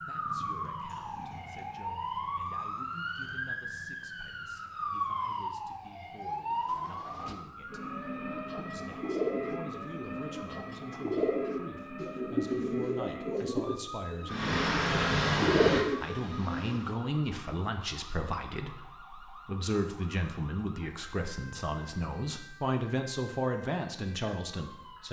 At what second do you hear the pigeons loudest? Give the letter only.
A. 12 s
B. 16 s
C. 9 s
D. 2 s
B.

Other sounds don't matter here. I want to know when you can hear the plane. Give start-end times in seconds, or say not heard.
14.2-16.9.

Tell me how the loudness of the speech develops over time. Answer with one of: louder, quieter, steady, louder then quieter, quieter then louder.
louder.